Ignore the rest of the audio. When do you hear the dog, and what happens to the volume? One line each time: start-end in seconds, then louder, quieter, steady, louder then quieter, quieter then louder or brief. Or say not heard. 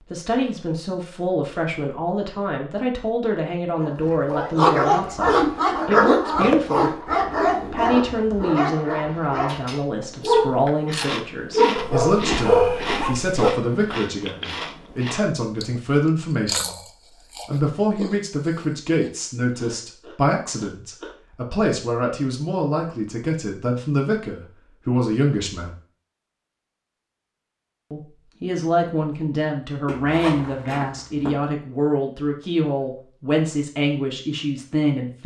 3.8-13.6 quieter then louder.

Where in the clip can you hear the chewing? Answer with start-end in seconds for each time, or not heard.
10.0-15.7, 16.3-21.1.